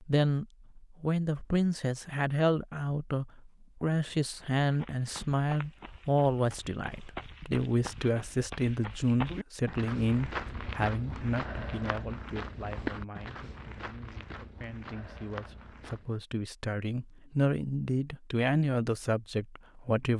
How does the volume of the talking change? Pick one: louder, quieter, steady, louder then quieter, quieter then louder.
quieter then louder.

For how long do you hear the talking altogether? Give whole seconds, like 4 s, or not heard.
20 s.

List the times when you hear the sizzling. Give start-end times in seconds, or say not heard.
not heard.